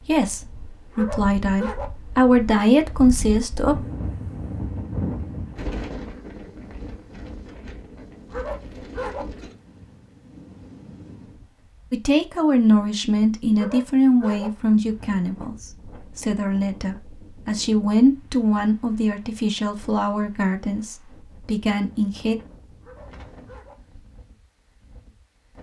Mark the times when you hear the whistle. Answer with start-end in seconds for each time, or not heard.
not heard.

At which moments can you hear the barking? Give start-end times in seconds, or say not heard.
0.9-1.9, 8.3-9.2, 13.6-14.5, 22.8-23.8.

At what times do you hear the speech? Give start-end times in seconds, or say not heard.
0.1-3.8, 11.9-22.4.